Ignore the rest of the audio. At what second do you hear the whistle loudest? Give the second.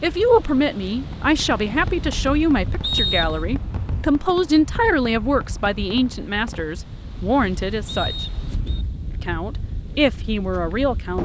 3 s.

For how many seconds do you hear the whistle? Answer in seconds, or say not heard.
2 s.